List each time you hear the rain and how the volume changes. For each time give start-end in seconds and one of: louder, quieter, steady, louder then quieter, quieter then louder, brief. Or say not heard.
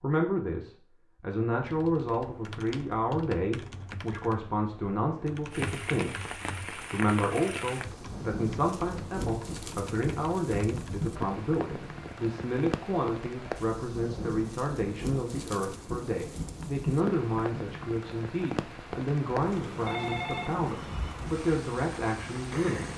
5.5-22.9 steady.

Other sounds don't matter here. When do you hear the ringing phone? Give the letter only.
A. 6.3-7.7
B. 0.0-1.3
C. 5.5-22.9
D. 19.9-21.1
D.